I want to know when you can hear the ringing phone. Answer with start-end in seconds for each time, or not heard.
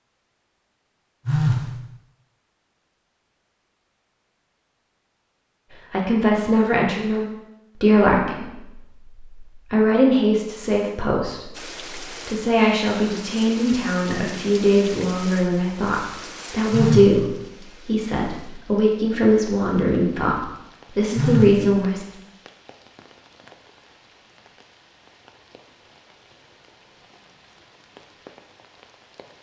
1.2-1.7, 16.7-17.2, 21.1-21.6.